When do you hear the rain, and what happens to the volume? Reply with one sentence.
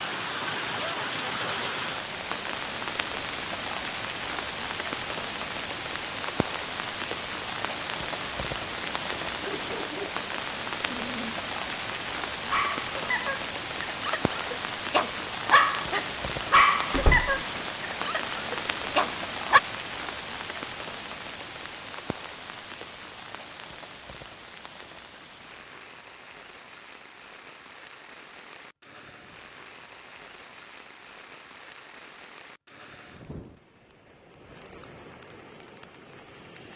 You can hear the rain from 0.0 to 36.7 s, getting quieter.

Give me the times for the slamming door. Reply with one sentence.
The slamming door can be heard from 16.9 to 17.4 s.